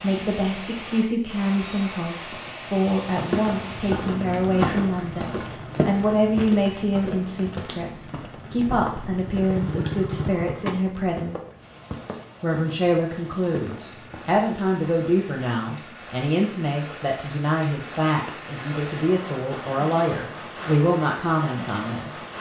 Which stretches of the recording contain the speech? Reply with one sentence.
You can hear the speech from 0.0 to 11.3 s and from 12.4 to 22.2 s.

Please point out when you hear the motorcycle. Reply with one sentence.
The motorcycle can be heard from 8.2 to 11.2 s.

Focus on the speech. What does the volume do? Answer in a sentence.
The loudness of the speech stays about the same.